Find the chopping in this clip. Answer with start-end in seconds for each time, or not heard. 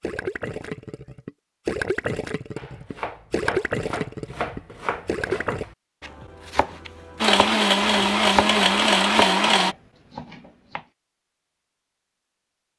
2.5-10.8.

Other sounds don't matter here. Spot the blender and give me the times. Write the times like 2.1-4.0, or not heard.
7.2-9.8.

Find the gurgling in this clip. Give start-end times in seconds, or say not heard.
0.0-5.7.